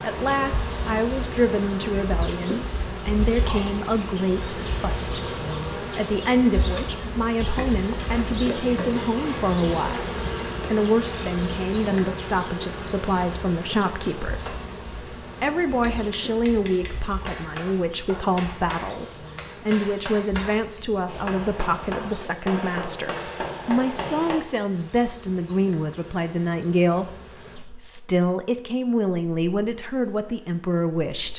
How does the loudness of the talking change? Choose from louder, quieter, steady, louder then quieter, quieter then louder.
steady.